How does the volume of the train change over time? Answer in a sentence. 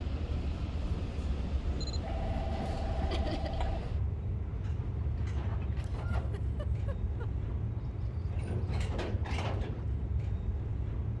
The volume of the train stays about the same.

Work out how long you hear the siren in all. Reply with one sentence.
You can't hear the siren here.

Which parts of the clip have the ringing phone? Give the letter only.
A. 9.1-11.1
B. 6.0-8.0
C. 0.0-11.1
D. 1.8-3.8
D.